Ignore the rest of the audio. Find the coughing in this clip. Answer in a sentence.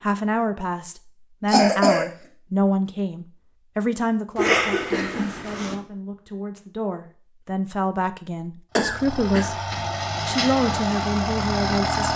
The coughing can be heard from 1.4 to 2.0 s, from 4.3 to 5.8 s and from 8.8 to 9.4 s.